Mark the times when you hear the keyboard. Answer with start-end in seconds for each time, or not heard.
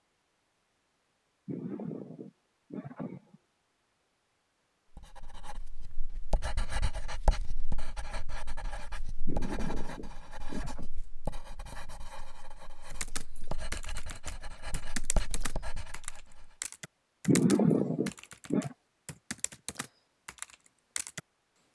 12.9-21.6.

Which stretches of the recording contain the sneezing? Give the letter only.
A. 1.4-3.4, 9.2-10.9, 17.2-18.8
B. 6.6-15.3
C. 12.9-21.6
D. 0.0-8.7
A.